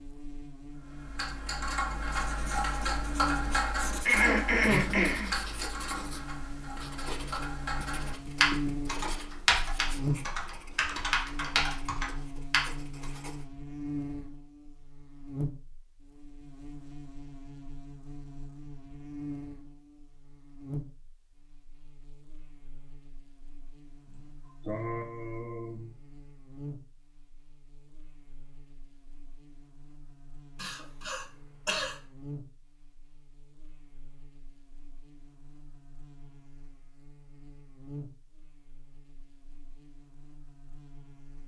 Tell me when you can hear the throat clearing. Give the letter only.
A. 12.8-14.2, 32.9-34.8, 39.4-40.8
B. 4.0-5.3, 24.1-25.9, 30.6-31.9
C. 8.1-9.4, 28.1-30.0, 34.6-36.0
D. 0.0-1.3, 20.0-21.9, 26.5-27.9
B.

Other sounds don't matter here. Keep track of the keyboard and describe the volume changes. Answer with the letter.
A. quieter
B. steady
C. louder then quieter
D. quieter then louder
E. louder
D.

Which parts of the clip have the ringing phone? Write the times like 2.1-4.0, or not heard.
not heard.